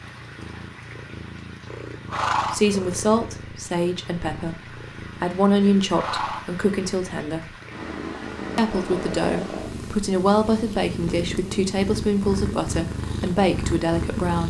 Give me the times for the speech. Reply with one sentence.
You can hear the speech from 2.5 to 7.5 s and from 8.6 to 14.4 s.